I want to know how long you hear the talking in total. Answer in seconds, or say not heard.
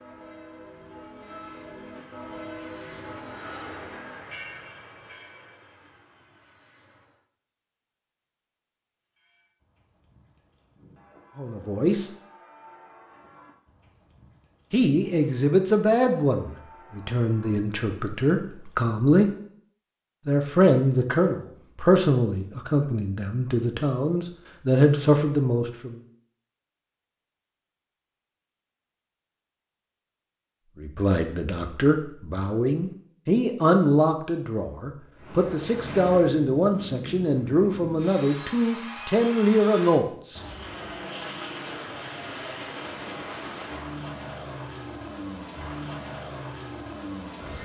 21 s.